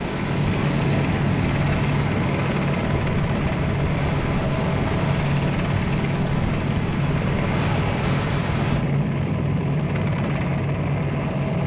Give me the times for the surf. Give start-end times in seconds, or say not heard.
0.0-8.8.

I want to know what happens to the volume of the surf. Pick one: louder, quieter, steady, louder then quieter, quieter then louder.
steady.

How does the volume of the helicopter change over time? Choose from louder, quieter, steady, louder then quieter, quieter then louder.
steady.